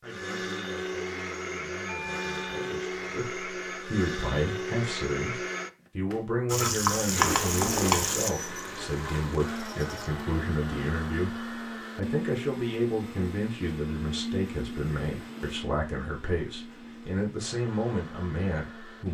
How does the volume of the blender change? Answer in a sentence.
The volume of the blender goes down.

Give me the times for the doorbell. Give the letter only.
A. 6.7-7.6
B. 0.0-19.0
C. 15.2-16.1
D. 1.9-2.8
D.